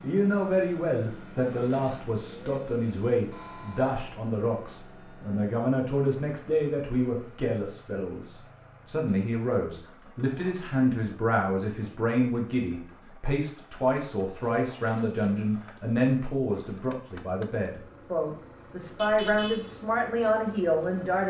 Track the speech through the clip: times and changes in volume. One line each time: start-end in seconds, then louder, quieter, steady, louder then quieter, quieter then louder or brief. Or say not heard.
0.0-21.2 steady.